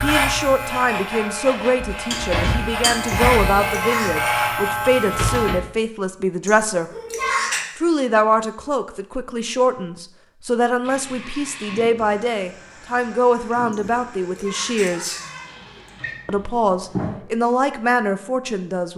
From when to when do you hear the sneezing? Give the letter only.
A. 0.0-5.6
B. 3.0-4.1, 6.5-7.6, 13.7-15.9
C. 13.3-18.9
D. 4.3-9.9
B.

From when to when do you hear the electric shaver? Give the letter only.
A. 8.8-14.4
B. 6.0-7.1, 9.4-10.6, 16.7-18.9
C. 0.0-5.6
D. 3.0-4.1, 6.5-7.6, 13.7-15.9
C.